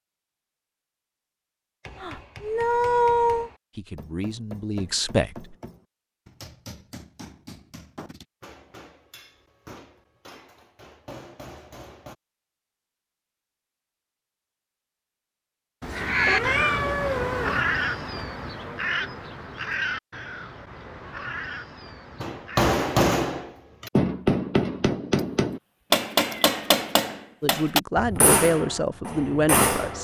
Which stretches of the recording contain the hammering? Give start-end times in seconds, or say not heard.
1.8-12.2, 22.2-29.9.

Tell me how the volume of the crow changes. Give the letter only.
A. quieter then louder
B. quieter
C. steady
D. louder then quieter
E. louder
B.